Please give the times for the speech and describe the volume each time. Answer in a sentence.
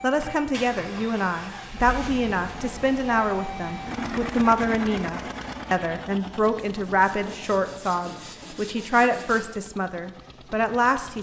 You can hear the speech from 0.0 to 11.1 s, at a steady volume.